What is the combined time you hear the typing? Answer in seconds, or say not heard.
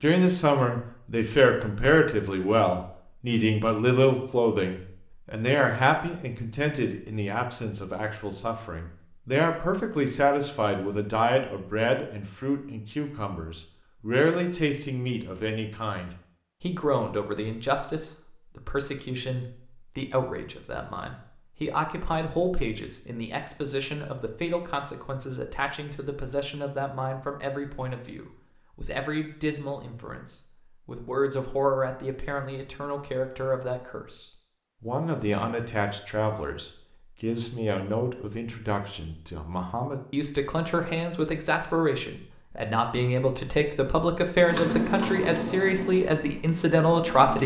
3 s.